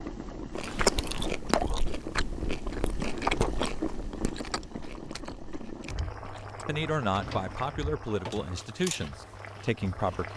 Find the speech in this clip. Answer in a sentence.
The speech can be heard from 6.7 to 10.3 s.